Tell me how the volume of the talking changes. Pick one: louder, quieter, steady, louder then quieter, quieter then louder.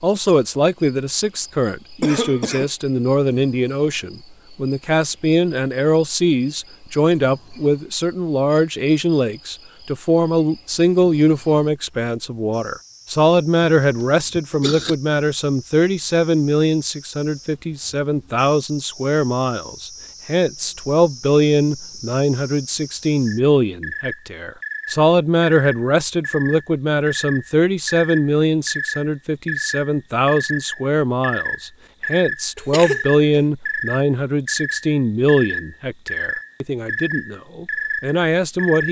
steady.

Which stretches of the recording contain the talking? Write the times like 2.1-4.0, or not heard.
0.0-38.8.